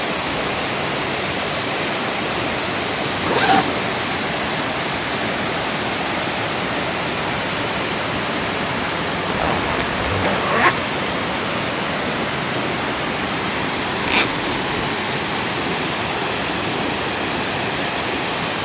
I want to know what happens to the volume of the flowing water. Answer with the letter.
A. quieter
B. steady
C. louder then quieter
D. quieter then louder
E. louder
B.